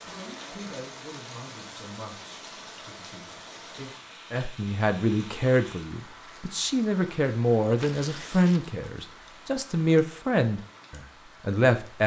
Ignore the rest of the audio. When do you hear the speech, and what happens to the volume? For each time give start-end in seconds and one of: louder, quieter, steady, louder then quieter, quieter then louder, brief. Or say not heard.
0.0-12.0 louder.